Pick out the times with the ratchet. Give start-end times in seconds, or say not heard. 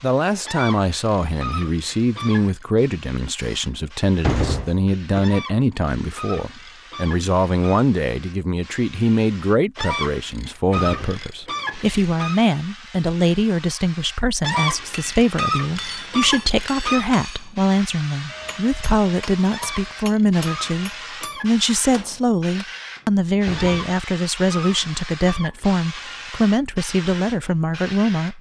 0.5-2.6, 5.2-7.8, 9.8-12.4, 14.4-17.1, 19.5-21.5, 23.6-26.0.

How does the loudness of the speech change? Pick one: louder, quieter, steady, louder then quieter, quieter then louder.
steady.